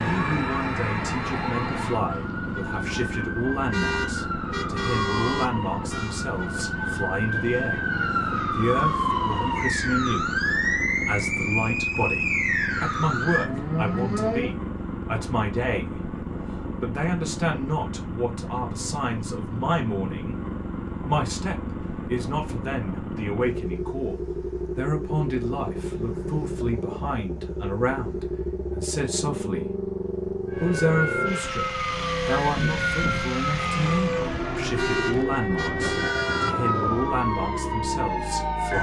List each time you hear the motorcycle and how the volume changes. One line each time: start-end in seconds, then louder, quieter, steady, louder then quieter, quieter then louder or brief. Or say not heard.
0.1-38.7 steady.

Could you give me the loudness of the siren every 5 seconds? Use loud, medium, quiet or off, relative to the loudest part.
medium, loud, loud, off, off, off, loud, loud.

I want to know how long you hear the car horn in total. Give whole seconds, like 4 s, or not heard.
4 s.